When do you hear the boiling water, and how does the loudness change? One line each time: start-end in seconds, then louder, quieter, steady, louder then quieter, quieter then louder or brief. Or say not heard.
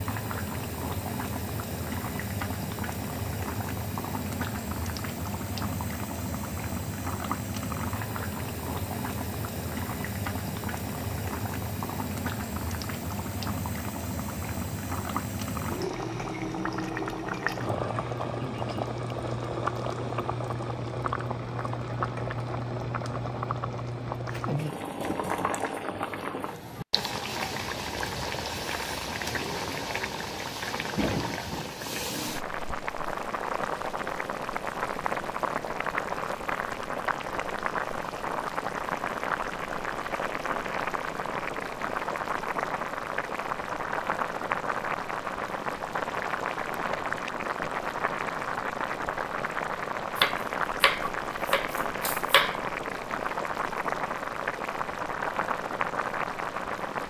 0.0-57.0 steady.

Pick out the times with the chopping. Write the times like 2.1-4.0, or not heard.
50.1-52.6.